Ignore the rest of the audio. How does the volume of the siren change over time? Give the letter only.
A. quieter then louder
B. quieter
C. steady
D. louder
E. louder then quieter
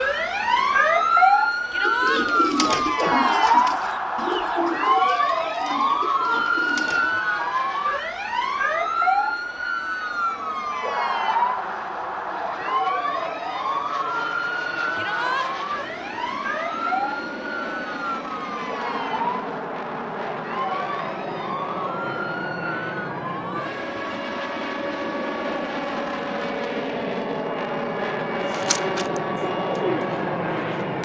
B.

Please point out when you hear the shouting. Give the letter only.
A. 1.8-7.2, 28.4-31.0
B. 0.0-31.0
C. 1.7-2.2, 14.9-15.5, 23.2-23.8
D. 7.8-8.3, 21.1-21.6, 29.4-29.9
C.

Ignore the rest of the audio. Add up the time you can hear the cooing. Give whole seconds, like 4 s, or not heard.
8 s.